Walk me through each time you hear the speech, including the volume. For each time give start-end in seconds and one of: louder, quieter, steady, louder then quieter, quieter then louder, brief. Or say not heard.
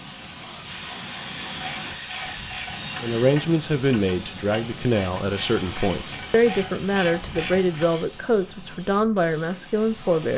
3.0-10.3 steady.